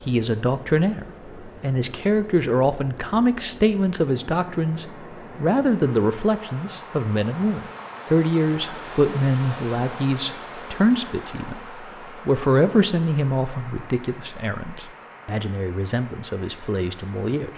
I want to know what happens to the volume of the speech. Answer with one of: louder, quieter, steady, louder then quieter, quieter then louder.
quieter.